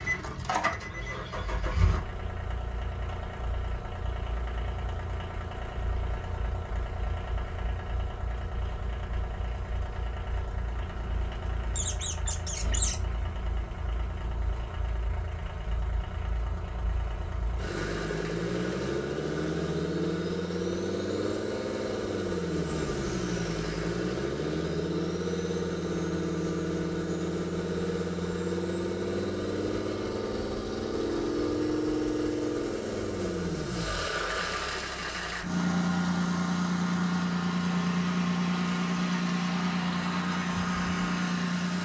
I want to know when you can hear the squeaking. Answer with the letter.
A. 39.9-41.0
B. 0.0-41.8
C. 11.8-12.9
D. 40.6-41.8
C.